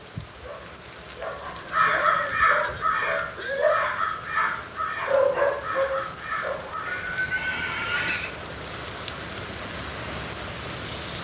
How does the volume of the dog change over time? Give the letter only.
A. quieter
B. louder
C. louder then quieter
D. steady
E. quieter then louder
B.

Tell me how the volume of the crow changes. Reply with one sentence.
The loudness of the crow goes down.